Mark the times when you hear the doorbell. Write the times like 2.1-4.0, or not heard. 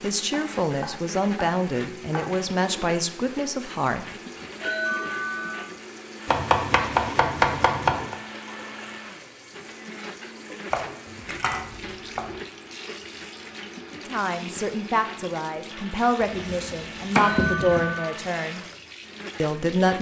4.5-5.7, 17.1-18.1.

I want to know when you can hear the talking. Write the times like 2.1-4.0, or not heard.
0.0-4.0, 13.9-18.6, 19.4-19.9.